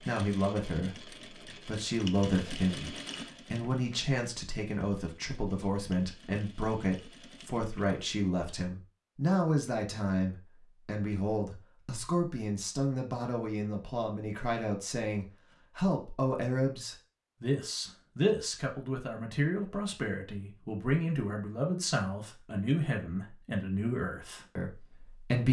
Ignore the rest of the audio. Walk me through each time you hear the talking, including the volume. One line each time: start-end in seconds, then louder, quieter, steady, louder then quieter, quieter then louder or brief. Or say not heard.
0.0-25.4 steady.